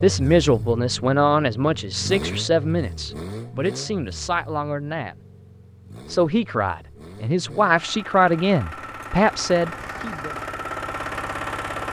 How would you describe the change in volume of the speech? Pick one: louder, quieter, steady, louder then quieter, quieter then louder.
quieter then louder.